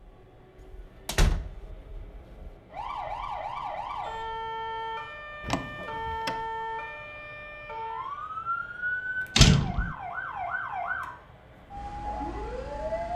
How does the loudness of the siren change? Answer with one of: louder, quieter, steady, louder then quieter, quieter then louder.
steady.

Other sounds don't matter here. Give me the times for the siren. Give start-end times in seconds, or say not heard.
2.7-13.1.